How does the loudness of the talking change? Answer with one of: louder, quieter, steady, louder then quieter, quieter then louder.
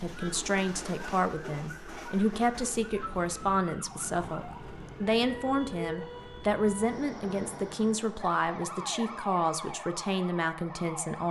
steady.